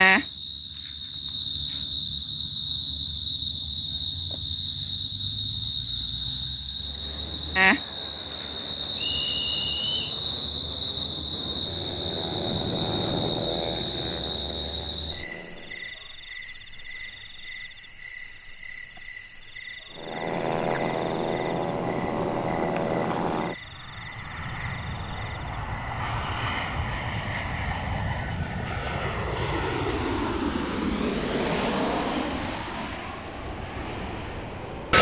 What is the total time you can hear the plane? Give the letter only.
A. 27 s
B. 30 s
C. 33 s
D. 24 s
D.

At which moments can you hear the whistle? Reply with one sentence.
The whistle can be heard from 8.9 to 10.2 s.